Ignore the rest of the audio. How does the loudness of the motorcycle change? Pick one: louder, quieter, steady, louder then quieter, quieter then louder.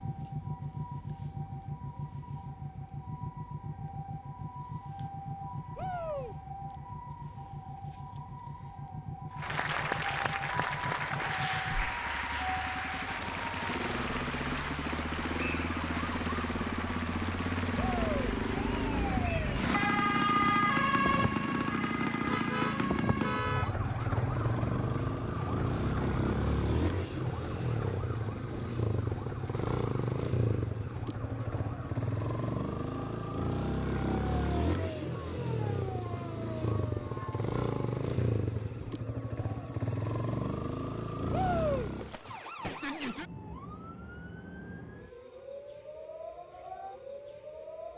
louder.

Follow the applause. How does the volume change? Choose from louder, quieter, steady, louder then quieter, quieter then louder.
quieter.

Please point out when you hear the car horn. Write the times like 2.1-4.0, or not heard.
22.2-23.8.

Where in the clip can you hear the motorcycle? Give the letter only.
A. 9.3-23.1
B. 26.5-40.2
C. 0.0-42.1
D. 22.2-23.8
C.